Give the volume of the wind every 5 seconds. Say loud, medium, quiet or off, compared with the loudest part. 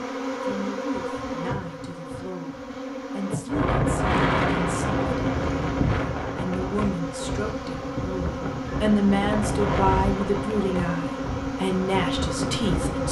loud, medium, medium.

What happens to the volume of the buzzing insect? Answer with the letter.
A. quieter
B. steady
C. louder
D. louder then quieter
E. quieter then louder
B.